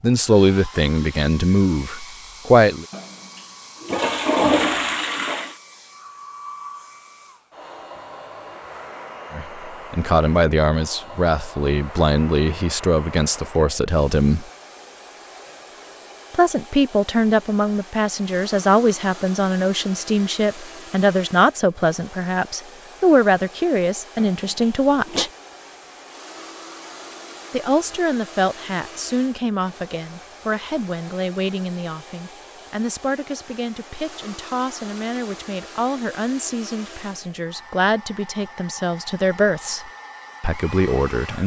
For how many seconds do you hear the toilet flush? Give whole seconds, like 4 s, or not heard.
4 s.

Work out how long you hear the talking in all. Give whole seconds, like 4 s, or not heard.
31 s.